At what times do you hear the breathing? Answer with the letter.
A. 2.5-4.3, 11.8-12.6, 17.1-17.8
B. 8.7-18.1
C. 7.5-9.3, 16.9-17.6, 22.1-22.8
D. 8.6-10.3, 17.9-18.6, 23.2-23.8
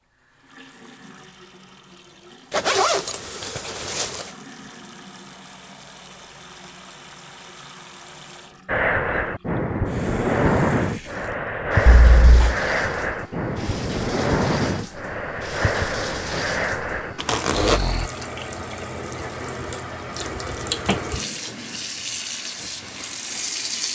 B.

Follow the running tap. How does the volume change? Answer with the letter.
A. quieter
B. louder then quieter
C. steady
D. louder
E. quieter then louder
D.